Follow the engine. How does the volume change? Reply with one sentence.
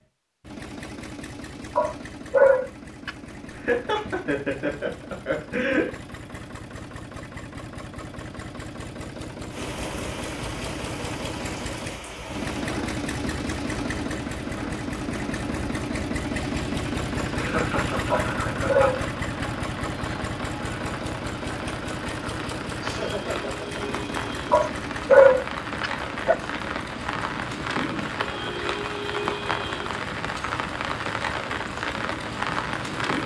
The volume of the engine goes up, then down.